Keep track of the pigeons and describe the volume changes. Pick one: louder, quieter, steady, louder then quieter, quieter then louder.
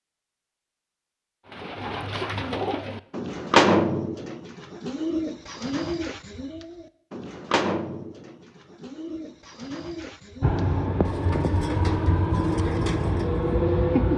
quieter.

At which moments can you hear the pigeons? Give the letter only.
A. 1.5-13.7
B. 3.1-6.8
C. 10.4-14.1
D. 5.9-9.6
A.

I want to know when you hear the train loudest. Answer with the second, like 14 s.
14 s.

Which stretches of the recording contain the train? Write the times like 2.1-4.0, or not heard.
10.4-14.1.